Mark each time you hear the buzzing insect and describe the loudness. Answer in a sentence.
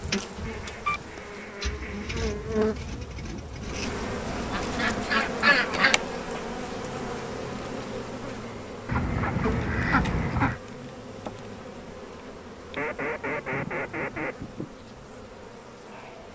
The buzzing insect can be heard from 0.0 to 16.3 s, getting quieter.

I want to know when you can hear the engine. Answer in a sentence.
You can hear the engine from 0.0 to 5.0 s.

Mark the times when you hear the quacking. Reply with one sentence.
You can hear the quacking from 0.5 to 2.2 s, from 4.5 to 6.0 s, from 8.8 to 10.6 s and from 12.8 to 14.7 s.